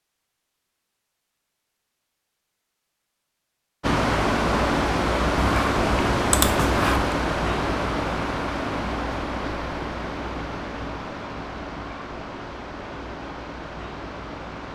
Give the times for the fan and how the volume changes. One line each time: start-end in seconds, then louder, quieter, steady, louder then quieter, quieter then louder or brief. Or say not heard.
3.8-14.6 quieter.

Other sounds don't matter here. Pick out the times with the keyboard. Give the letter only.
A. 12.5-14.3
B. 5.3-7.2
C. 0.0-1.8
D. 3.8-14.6
B.